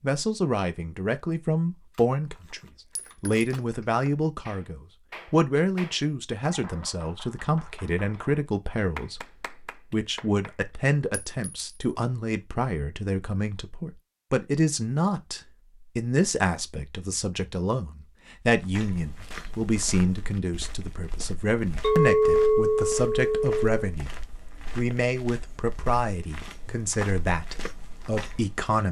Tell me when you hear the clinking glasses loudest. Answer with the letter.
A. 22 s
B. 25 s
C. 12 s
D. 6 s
A.